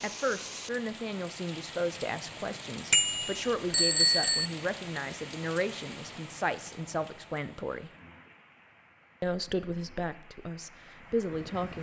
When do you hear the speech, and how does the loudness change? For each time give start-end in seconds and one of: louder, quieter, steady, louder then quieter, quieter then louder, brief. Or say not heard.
0.0-7.9 steady
9.2-11.7 brief.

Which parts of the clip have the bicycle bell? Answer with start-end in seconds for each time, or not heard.
2.9-4.5.